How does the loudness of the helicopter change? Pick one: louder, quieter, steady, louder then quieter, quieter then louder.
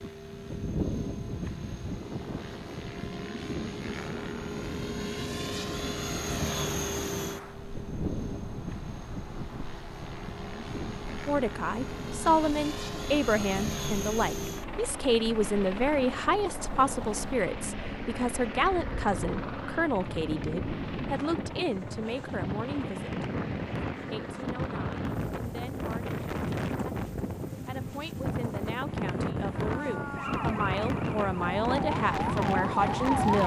quieter.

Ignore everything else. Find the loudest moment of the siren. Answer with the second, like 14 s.
33 s.